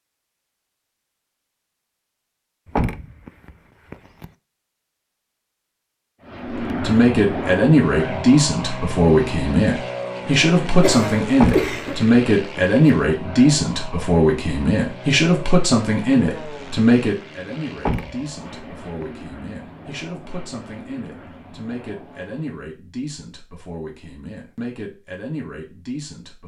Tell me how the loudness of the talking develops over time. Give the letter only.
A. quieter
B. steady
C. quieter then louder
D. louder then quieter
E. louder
A.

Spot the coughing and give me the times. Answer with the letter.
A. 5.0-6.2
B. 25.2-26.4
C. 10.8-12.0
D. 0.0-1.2
C.